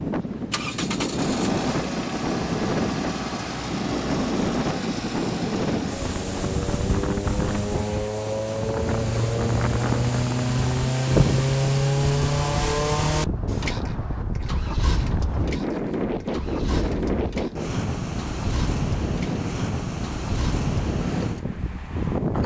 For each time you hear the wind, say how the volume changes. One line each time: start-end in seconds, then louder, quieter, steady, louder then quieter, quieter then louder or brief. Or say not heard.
0.0-22.4 steady.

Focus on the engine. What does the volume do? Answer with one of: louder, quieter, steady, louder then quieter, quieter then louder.
louder then quieter.